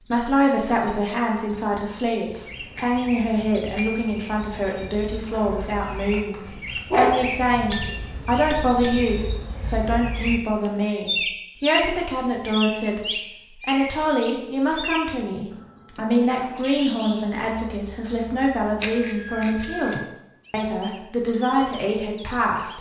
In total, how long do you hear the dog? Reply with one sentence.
The dog can be heard for 2 seconds in total.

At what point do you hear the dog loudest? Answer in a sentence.
The volume of the dog peaks at 7 seconds.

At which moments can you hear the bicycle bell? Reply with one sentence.
The bicycle bell can be heard from 2.5 to 4.1 s, from 7.7 to 9.1 s and from 18.8 to 20.1 s.